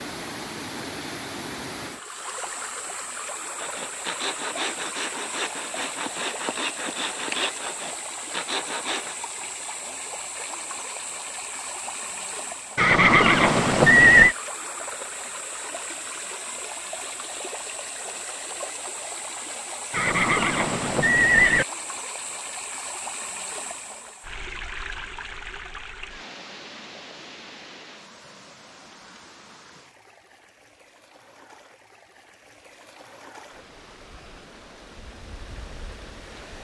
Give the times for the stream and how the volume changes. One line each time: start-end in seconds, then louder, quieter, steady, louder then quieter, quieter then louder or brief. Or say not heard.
0.0-36.5 quieter.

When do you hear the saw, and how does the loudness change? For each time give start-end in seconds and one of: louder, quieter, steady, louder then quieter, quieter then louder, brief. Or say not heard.
3.5-9.2 steady.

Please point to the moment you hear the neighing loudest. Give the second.
14 s.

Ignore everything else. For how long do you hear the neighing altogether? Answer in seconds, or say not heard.
3 s.